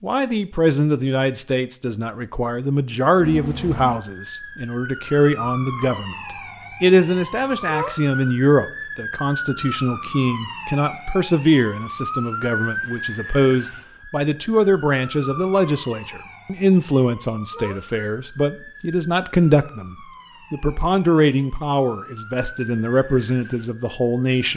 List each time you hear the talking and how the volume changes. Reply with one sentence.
You can hear the talking from 0.0 to 24.5 s, at a steady volume.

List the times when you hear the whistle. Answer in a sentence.
You can't hear the whistle here.